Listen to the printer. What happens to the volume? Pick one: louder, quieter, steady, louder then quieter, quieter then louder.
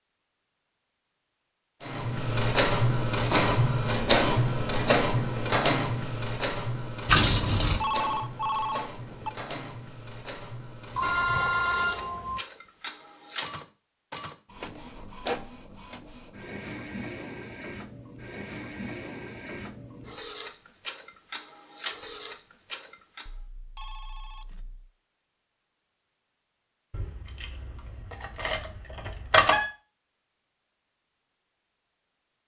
quieter.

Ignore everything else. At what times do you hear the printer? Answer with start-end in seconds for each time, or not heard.
1.8-23.3.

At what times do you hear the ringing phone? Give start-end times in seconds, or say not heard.
7.7-9.3, 10.9-12.4, 23.2-24.9.